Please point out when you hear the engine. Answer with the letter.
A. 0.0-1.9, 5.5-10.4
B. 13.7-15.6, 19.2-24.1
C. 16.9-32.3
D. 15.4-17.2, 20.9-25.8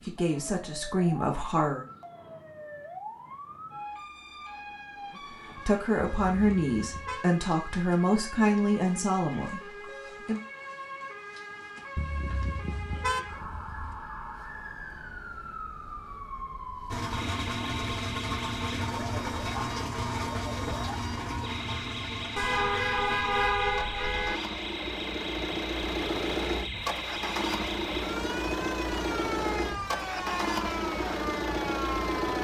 C.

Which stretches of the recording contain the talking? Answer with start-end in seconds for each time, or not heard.
0.0-1.9, 5.5-10.4.